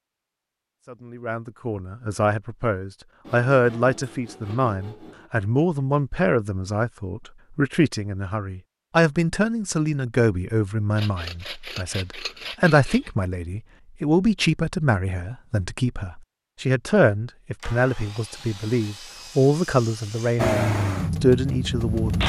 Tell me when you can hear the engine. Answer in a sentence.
You can hear the engine from 20.4 to 22.2 s.